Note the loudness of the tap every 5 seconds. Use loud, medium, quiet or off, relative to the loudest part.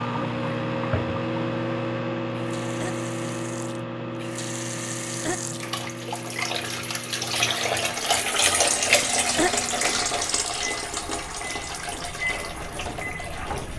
quiet, loud, medium.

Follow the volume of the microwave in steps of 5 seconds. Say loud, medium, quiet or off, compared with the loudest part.
loud, medium, medium.